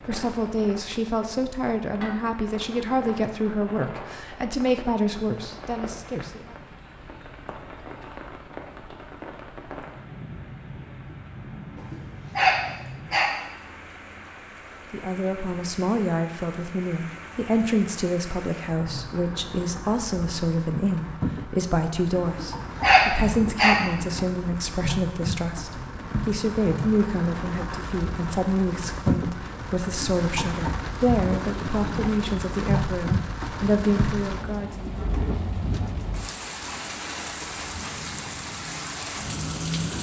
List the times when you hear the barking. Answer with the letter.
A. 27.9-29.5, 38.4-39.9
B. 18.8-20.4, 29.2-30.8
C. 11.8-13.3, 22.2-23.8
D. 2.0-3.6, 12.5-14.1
C.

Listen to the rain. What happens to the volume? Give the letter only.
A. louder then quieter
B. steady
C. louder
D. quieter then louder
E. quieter
C.